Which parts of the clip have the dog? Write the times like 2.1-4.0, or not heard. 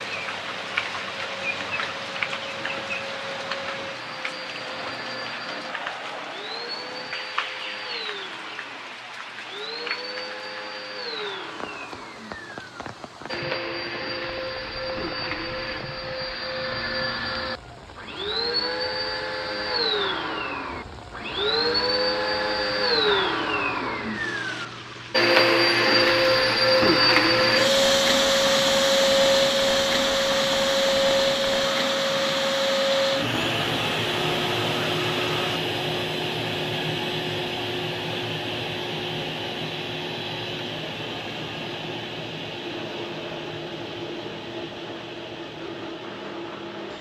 not heard.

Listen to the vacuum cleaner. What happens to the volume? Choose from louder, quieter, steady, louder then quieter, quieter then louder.
louder then quieter.